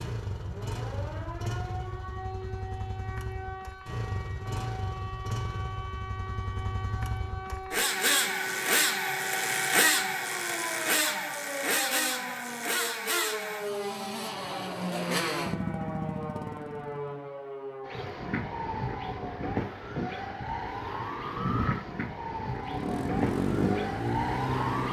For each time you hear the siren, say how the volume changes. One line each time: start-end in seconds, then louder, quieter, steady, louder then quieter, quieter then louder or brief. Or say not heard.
0.2-24.8 louder.